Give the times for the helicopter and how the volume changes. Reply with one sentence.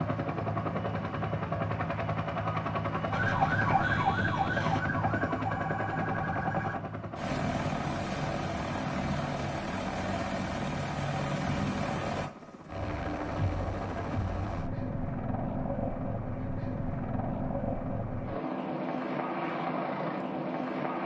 The helicopter can be heard from 0.0 to 21.0 s, at a steady volume.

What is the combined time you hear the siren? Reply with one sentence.
You can hear the siren for 4 seconds altogether.